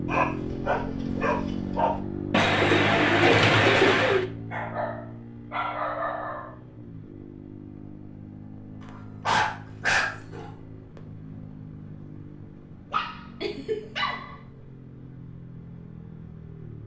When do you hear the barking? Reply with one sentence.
You can hear the barking from 0.1 to 2.0 s, from 4.5 to 6.5 s, from 9.2 to 10.5 s and from 12.9 to 14.3 s.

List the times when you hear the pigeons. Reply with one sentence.
The pigeons can be heard from 2.3 to 4.2 s.